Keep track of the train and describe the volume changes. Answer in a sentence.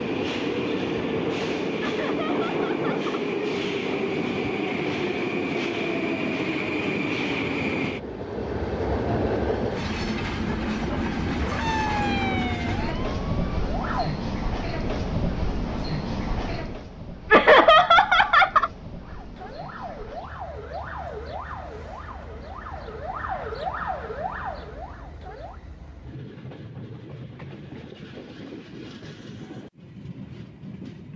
The volume of the train goes down.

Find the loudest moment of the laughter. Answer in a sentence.
The volume of the laughter peaks at 18 seconds.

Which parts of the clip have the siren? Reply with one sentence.
The siren can be heard from 11.6 to 14.1 s and from 19.0 to 25.6 s.